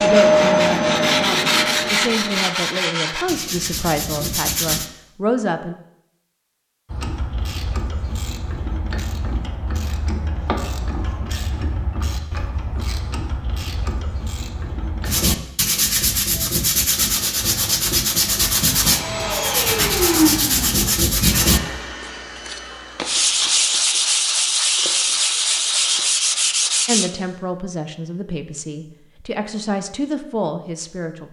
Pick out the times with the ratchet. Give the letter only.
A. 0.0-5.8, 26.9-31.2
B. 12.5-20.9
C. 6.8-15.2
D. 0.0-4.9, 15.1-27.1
C.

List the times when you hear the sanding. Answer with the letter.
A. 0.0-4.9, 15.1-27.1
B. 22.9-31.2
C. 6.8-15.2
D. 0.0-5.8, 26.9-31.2
A.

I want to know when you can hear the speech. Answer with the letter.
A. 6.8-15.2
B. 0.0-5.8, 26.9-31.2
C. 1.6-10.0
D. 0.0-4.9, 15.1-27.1
B.